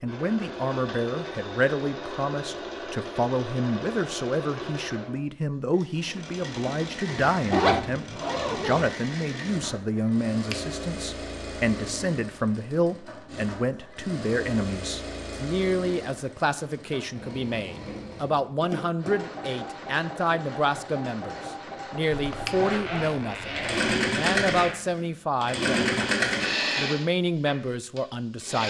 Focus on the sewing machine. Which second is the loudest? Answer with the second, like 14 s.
26 s.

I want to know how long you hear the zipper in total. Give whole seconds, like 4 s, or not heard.
5 s.